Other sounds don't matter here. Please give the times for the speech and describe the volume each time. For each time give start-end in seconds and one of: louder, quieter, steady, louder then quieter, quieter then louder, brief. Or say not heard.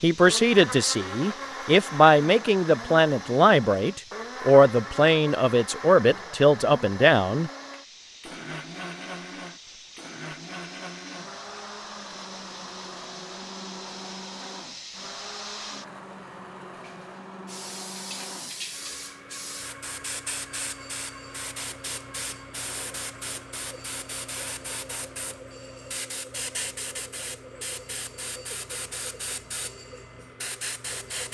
0.0-7.5 steady.